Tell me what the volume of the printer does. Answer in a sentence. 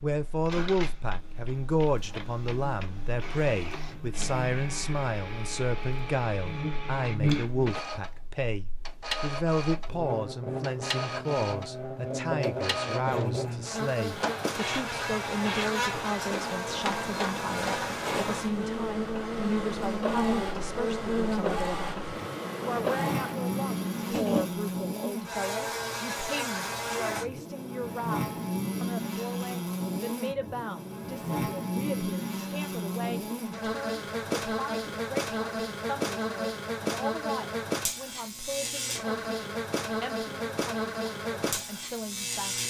The volume of the printer goes up.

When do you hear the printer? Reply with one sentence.
The printer can be heard from 0.1 to 24.6 s.